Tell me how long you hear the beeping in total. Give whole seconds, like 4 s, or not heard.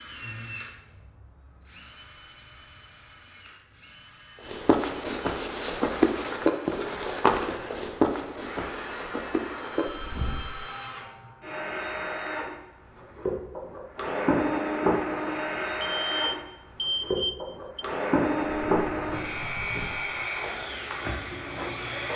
2 s.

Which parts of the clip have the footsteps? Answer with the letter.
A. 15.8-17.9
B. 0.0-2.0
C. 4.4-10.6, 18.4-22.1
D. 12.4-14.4
C.